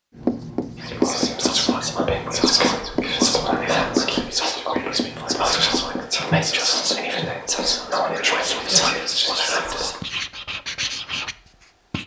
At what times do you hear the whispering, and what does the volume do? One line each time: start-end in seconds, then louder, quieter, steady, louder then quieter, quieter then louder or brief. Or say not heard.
0.8-10.0 steady.